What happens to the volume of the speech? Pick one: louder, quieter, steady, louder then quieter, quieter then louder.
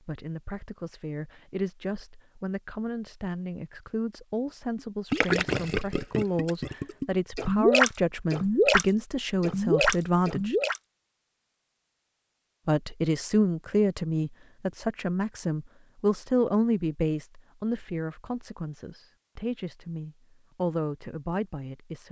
louder then quieter.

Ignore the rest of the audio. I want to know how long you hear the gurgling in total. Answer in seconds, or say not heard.
6 s.